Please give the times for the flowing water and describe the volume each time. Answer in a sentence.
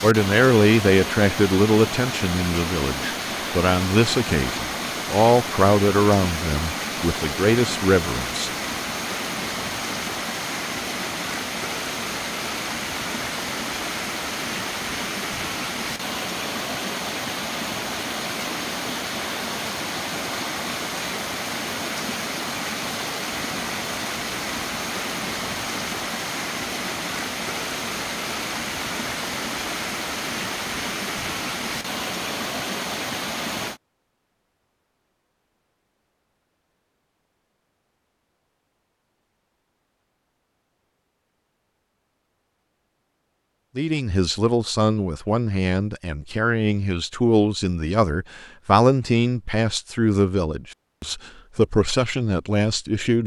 The flowing water can be heard from 0.0 to 33.8 s, at a steady volume.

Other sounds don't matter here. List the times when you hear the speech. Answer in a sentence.
You can hear the speech from 0.0 to 8.5 s and from 43.8 to 53.2 s.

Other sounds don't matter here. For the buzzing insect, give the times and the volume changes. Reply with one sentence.
The buzzing insect can't be heard in this clip.